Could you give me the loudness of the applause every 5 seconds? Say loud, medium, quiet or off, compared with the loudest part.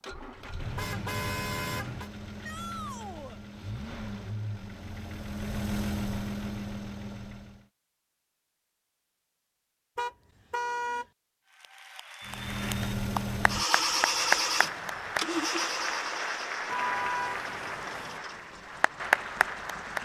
off, off, loud, loud.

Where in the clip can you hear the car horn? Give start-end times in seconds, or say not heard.
0.6-2.1, 9.9-11.1, 16.6-18.2.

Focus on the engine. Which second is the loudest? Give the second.
14 s.